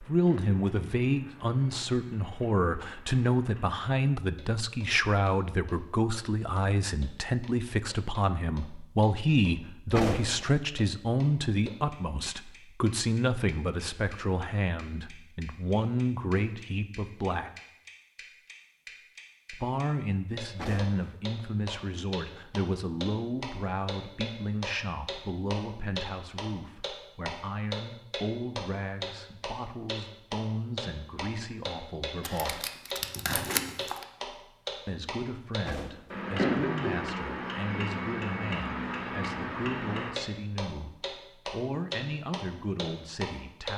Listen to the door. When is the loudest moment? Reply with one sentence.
The loudest moment of the door is at 10 seconds.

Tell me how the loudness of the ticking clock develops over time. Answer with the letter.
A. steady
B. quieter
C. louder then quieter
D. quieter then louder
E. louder
E.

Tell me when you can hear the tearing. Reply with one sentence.
You can hear the tearing from 32.2 to 34.0 s.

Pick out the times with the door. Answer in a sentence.
You can hear the door from 9.9 to 10.5 s, from 20.6 to 21.0 s and from 35.6 to 36.2 s.